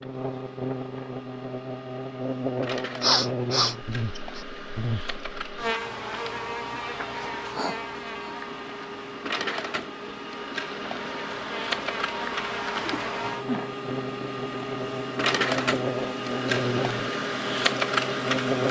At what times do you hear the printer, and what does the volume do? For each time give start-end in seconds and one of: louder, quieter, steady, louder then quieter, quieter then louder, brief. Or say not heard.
0.0-18.6 louder.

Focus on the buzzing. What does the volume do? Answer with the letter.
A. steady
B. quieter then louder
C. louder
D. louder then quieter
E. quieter
B.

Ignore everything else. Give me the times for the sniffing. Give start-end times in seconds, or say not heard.
3.0-4.4, 7.5-8.3, 12.8-13.7.